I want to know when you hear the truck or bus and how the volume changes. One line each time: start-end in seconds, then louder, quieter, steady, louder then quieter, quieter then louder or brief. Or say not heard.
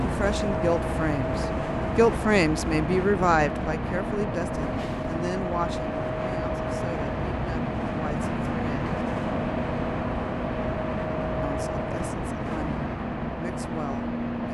0.0-14.4 steady.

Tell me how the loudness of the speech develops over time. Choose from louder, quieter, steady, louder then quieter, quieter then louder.
quieter.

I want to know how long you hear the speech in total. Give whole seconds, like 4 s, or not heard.
12 s.